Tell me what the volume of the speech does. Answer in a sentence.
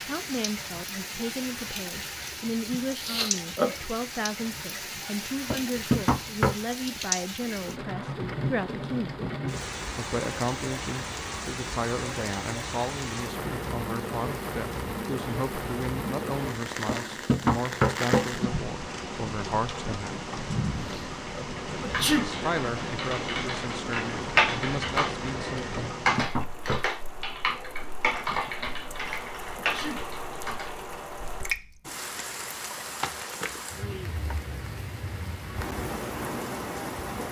The loudness of the speech stays about the same.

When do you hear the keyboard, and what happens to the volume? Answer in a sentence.
You can hear the keyboard from 21.4 to 30.8 s, getting louder then quieter.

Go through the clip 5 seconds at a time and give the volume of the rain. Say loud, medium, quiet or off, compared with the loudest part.
loud, loud, loud, loud, loud, medium, loud, loud.